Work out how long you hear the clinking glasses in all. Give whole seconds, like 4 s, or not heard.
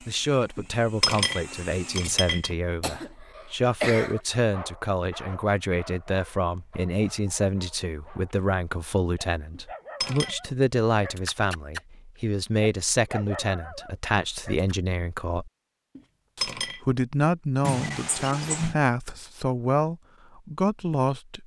4 s.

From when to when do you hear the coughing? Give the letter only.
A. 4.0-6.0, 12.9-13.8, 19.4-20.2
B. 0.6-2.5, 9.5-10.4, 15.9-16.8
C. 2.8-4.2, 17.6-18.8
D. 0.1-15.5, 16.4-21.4
C.